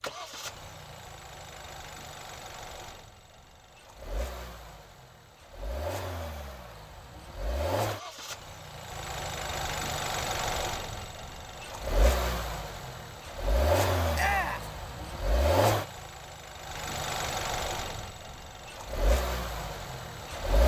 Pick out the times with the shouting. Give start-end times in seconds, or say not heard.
14.2-14.7.